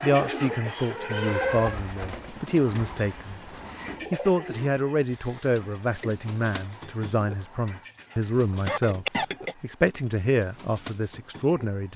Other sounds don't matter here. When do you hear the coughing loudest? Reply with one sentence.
The volume of the coughing peaks at 9 seconds.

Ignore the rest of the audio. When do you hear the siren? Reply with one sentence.
The siren can be heard from 0.0 to 1.8 s.